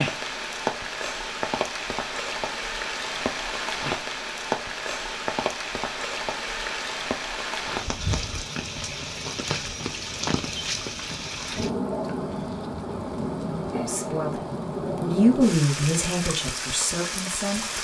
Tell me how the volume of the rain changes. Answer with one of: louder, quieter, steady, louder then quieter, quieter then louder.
steady.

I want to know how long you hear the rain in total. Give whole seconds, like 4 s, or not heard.
18 s.